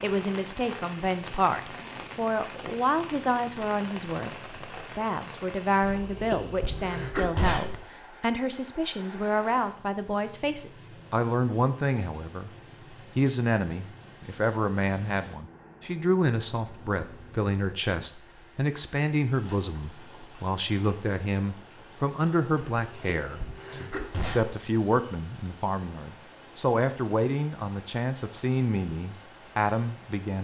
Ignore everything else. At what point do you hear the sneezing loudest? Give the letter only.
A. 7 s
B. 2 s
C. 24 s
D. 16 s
A.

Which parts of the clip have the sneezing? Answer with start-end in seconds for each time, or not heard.
5.8-7.8, 22.8-24.6.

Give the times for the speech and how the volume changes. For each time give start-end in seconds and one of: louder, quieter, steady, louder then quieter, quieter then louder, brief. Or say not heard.
0.0-12.5 steady
13.2-30.3 steady.